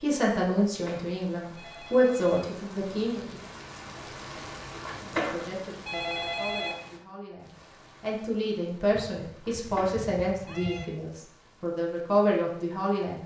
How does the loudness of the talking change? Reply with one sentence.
The loudness of the talking goes down, then up.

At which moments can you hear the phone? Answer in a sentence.
You can hear the phone from 0.7 to 2.5 s, from 4.7 to 6.8 s and from 9.3 to 10.9 s.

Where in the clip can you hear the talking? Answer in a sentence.
The talking can be heard from 0.0 to 3.4 s and from 5.2 to 13.2 s.